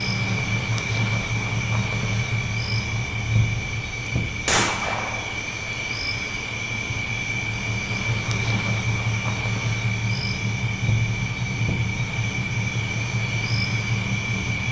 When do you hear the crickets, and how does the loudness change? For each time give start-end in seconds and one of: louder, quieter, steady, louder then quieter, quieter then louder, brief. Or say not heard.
0.0-14.6 steady.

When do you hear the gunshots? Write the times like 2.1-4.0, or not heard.
4.5-5.3.